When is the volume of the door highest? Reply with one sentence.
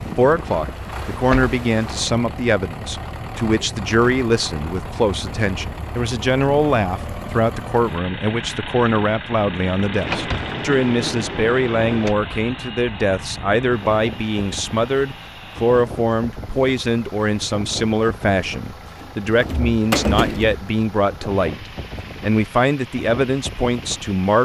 The volume of the door peaks at 20 seconds.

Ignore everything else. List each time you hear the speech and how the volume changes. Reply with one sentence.
You can hear the speech from 0.0 to 24.4 s, at a steady volume.